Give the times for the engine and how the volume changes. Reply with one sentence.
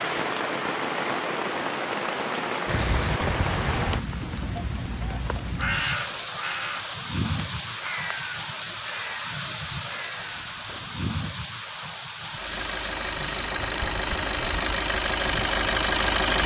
You can hear the engine from 12.2 to 16.4 s, getting louder.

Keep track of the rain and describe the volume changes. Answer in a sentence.
The loudness of the rain goes down.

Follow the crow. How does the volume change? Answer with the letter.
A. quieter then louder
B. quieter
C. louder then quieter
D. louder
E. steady
B.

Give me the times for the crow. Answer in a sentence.
You can hear the crow from 2.6 to 11.1 s.